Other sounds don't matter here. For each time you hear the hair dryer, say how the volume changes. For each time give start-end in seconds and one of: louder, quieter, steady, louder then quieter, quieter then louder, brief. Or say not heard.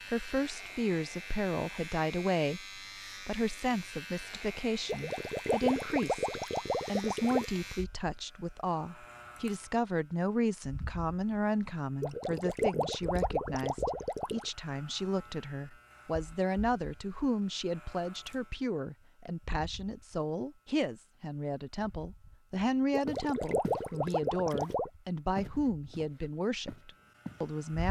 not heard.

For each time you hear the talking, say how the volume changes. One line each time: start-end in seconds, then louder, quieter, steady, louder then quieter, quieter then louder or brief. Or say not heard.
0.1-27.8 steady.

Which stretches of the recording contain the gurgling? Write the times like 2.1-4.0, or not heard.
4.8-7.5, 12.0-14.4, 22.9-24.9.